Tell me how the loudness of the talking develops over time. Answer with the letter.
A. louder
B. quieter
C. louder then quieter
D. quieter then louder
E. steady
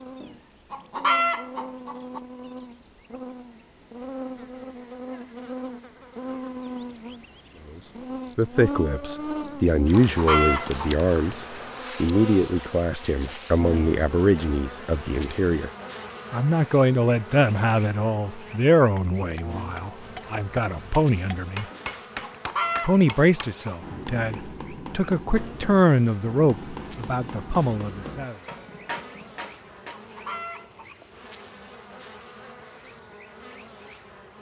E.